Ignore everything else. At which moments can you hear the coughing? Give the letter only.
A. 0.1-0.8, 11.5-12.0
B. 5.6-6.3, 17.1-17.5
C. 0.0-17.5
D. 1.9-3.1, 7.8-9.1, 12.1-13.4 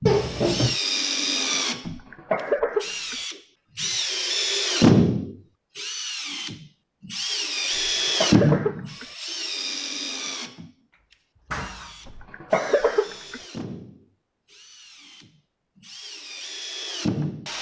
D.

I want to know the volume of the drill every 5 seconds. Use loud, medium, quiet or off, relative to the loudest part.
loud, loud, quiet, medium.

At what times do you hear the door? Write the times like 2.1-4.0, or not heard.
0.1-0.8, 11.5-12.0.